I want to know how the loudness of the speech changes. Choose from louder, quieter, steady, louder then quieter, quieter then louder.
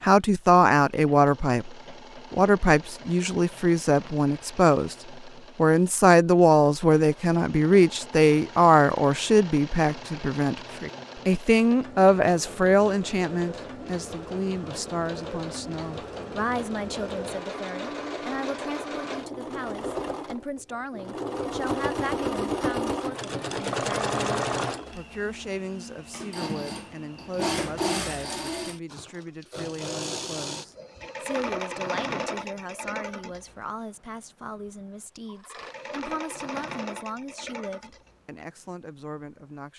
quieter.